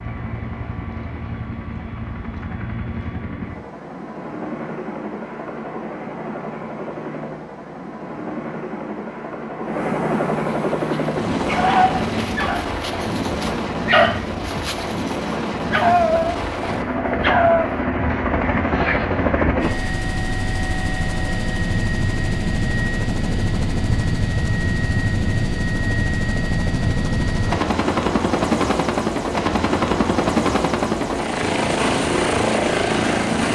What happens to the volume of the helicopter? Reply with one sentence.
The volume of the helicopter goes up.